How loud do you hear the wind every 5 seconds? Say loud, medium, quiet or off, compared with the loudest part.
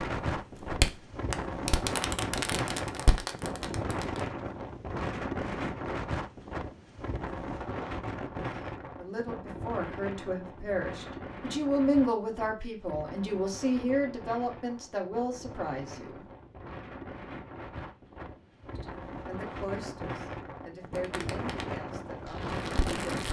loud, loud, medium, medium, loud.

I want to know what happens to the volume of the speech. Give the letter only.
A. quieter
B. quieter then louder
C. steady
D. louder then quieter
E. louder
D.